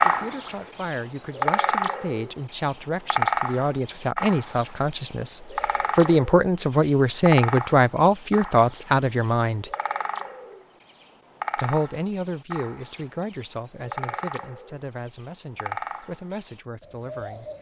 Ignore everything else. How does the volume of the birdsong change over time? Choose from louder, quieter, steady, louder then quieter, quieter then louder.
quieter.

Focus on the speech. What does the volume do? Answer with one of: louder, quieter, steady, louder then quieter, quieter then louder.
louder then quieter.